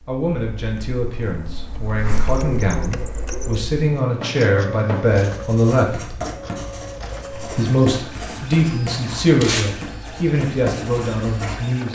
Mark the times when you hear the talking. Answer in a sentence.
You can hear the talking from 0.1 to 6.2 s and from 7.4 to 11.8 s.